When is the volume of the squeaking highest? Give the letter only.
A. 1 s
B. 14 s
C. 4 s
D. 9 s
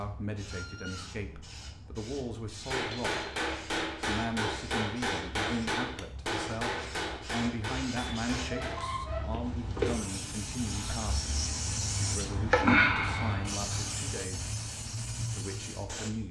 D.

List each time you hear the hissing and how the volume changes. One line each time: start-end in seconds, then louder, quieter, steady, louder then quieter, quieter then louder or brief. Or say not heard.
0.0-16.2 louder.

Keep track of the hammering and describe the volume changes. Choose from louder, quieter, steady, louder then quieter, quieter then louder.
quieter.